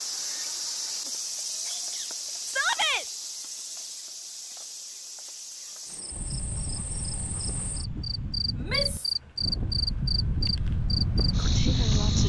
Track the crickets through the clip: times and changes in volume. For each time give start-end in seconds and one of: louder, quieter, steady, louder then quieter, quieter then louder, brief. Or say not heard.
0.0-12.2 quieter then louder.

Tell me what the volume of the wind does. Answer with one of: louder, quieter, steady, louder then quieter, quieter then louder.
louder.